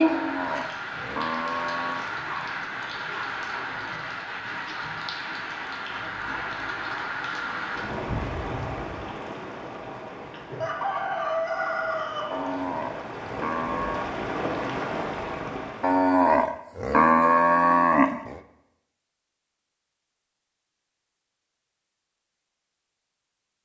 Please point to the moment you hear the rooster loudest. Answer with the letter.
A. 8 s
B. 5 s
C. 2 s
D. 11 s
D.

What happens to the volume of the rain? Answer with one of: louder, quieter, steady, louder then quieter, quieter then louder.
quieter then louder.